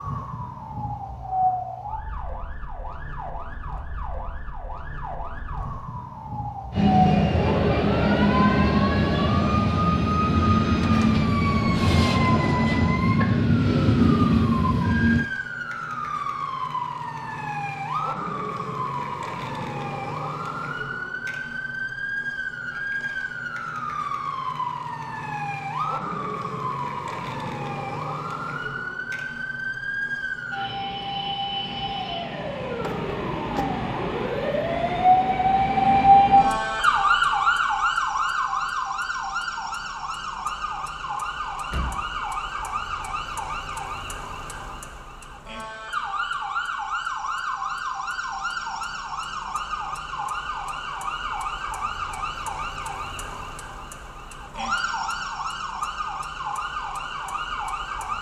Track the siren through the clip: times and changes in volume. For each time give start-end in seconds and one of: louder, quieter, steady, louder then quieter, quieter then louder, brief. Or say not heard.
0.0-58.1 louder then quieter.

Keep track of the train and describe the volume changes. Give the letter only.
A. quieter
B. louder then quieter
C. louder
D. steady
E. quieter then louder
D.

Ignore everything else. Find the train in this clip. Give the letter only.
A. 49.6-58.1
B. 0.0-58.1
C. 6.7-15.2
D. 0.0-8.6
C.